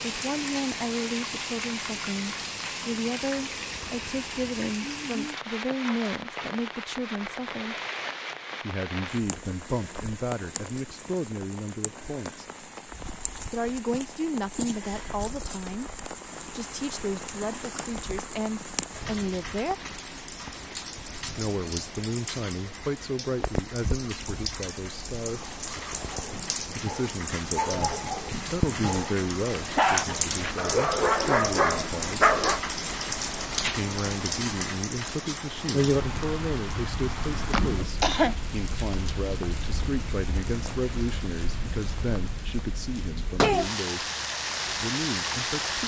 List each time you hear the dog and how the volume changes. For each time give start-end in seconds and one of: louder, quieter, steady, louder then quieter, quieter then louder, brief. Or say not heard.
26.1-32.6 louder.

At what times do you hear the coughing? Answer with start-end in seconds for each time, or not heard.
37.5-38.4.